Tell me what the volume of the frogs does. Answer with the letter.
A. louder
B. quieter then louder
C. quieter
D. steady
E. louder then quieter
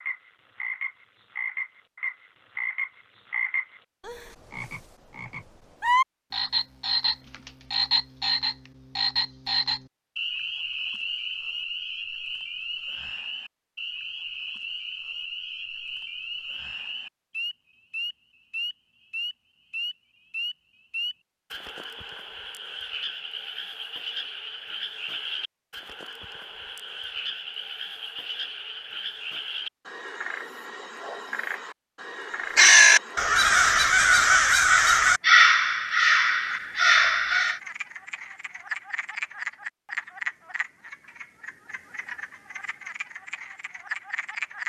C.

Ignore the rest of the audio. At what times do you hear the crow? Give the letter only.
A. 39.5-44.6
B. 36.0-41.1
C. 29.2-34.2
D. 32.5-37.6
D.